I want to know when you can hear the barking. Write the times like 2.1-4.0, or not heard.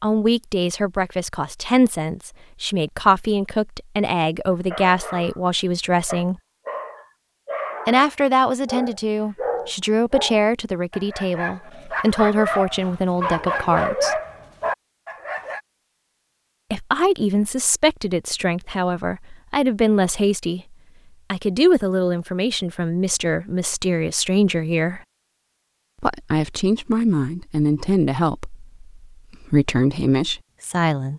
4.5-5.4, 6.0-15.6.